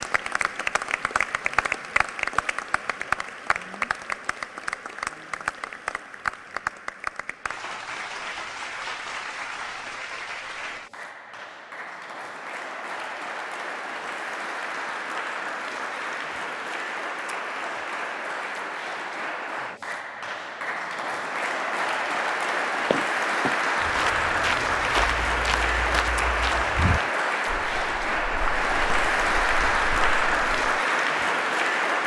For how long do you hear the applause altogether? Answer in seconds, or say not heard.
32 s.